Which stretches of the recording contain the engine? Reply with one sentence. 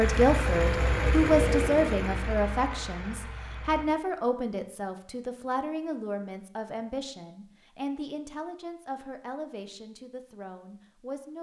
The engine can be heard from 0.0 to 3.9 s.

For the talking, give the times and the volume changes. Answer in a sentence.
You can hear the talking from 0.0 to 11.3 s, getting quieter.